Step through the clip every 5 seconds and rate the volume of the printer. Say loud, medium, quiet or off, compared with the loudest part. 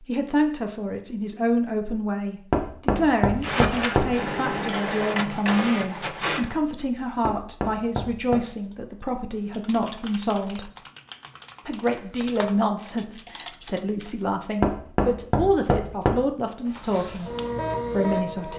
loud, loud, off, loud.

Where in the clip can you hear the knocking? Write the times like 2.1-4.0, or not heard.
2.5-4.2, 7.2-8.4, 14.6-16.1.